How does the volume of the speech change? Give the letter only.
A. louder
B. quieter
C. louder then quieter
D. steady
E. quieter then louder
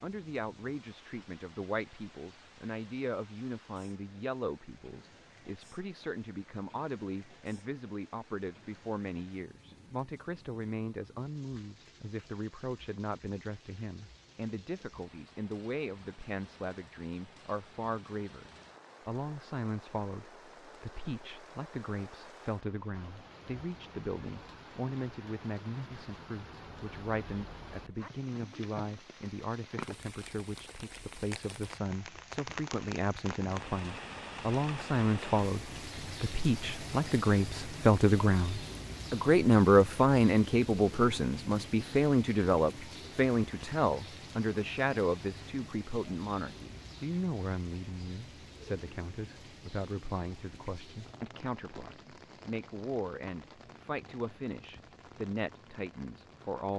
C.